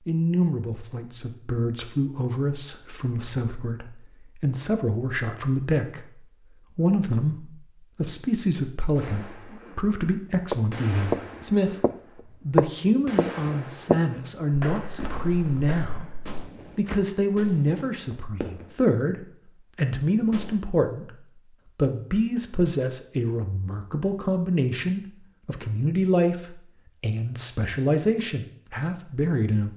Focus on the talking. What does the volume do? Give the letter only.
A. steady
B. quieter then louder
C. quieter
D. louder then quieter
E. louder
A.